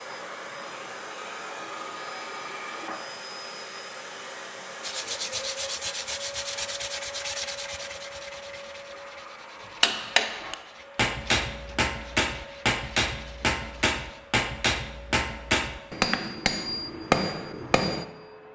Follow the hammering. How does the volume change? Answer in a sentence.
The loudness of the hammering stays about the same.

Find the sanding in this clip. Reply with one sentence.
The sanding can be heard from 4.8 to 14.0 s.